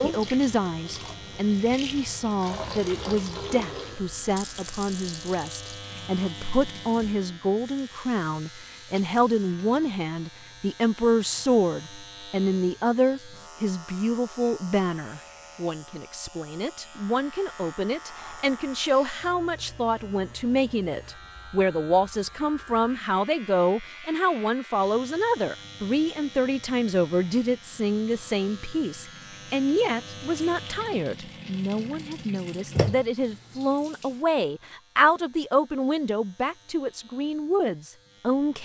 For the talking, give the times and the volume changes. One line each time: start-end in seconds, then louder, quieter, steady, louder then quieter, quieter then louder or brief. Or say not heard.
0.0-38.6 steady.